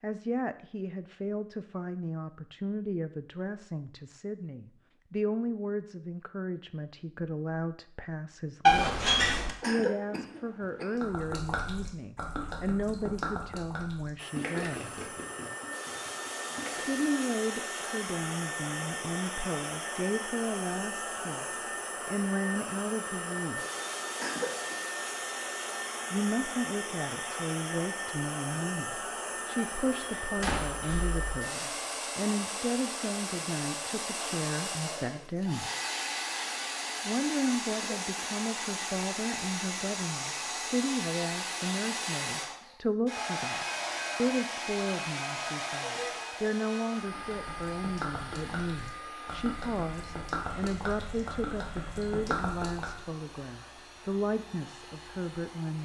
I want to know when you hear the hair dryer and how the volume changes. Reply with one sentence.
You can hear the hair dryer from 14.2 to 55.8 s, getting quieter.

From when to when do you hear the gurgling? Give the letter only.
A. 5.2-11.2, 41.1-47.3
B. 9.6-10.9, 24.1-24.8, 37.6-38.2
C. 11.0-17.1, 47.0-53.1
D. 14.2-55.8
C.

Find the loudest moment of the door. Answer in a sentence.
The volume of the door peaks at 9 seconds.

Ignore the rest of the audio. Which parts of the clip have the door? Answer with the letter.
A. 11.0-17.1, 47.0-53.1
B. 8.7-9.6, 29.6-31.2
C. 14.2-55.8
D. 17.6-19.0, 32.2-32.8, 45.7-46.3
B.